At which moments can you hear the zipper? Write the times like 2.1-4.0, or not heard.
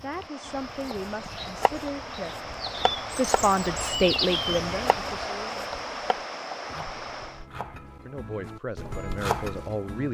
not heard.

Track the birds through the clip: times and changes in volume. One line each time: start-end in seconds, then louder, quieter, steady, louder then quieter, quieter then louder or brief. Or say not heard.
0.0-5.3 louder.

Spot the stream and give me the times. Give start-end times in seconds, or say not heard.
0.0-7.5.